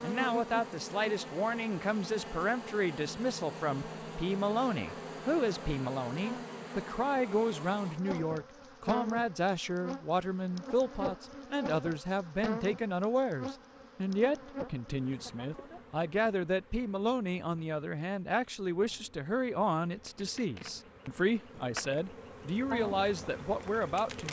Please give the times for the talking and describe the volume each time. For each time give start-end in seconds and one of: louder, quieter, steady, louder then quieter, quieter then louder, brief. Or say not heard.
0.0-24.2 steady.